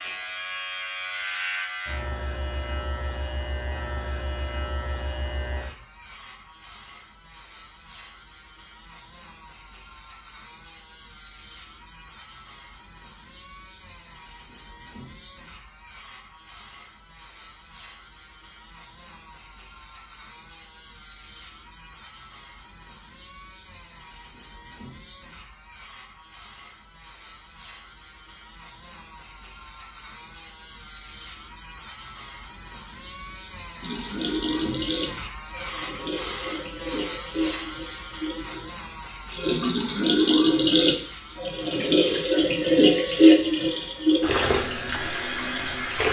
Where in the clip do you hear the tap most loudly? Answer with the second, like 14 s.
43 s.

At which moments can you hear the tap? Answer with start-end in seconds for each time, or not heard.
33.8-46.0.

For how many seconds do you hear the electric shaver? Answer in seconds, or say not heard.
46 s.